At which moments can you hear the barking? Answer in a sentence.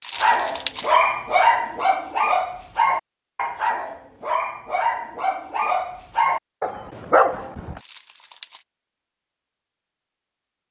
You can hear the barking from 0.1 to 7.8 s.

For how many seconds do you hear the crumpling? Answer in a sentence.
The crumpling can be heard for 2 seconds in total.